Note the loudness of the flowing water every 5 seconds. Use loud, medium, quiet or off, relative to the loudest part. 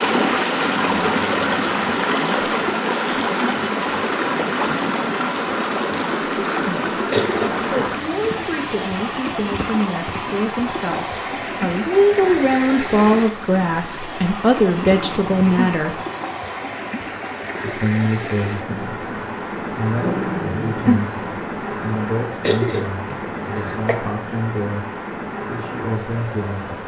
loud, loud, medium, medium, medium, medium.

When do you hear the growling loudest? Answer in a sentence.
The loudest moment of the growling is at 21 seconds.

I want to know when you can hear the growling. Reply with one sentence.
You can hear the growling from 0.6 to 2.0 s, from 14.8 to 15.8 s and from 20.0 to 21.1 s.